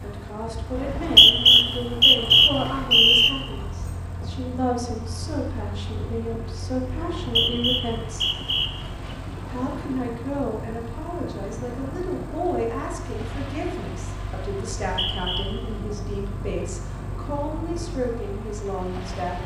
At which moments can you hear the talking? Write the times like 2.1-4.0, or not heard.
0.0-8.3, 9.4-19.4.